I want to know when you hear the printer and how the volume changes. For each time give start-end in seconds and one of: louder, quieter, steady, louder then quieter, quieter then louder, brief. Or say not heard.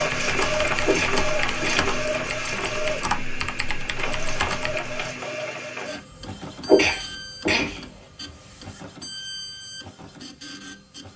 0.0-11.1 quieter.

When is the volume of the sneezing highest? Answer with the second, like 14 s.
7 s.